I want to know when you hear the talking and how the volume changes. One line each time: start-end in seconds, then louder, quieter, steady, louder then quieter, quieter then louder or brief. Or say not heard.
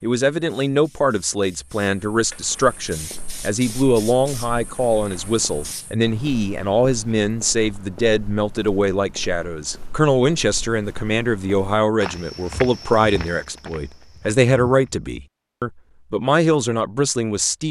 0.0-17.6 steady.